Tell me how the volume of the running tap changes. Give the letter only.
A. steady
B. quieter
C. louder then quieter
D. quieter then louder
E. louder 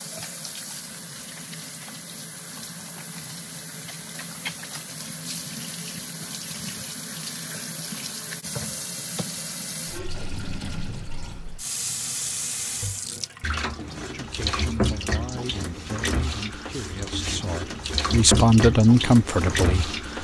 E.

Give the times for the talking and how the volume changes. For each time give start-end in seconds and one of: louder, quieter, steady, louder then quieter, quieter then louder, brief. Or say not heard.
14.0-20.1 louder.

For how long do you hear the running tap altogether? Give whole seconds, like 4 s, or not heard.
20 s.